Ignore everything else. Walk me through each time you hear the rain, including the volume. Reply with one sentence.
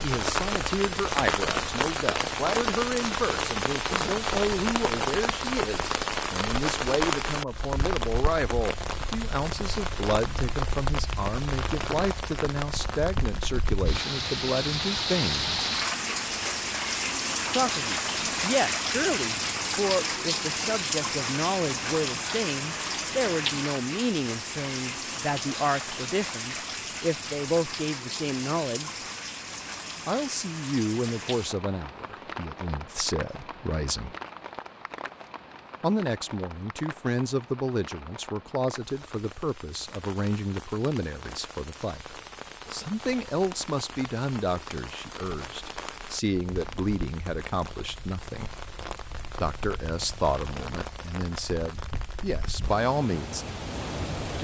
You can hear the rain from 0.0 to 54.3 s, getting quieter.